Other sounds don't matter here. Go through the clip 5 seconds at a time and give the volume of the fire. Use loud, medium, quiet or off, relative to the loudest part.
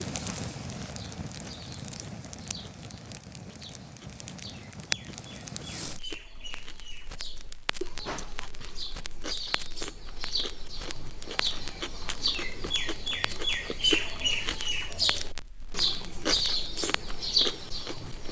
loud, medium, medium, medium.